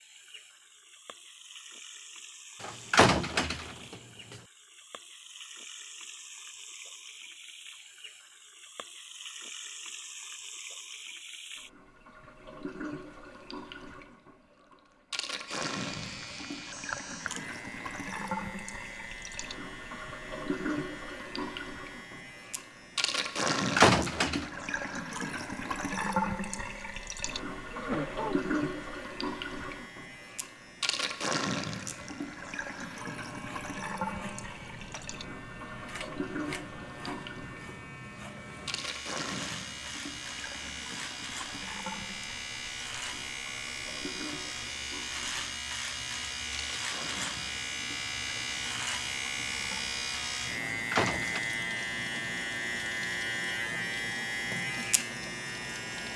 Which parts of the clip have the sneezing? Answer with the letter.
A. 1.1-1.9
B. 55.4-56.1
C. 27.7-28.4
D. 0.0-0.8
C.